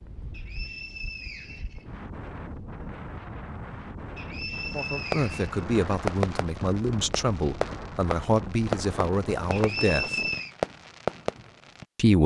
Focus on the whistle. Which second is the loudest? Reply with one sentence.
The loudest moment of the whistle is at 10 seconds.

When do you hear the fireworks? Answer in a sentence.
You can hear the fireworks from 5.0 to 11.8 s.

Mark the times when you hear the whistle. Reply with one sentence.
The whistle can be heard from 0.3 to 1.9 s, from 4.2 to 5.7 s and from 9.5 to 10.5 s.